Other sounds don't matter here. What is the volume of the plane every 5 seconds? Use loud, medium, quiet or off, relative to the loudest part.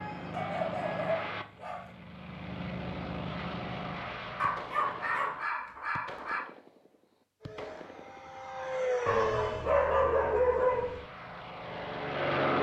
medium, loud, loud.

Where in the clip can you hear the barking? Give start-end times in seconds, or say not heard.
0.3-1.9, 4.3-6.4, 9.1-11.0.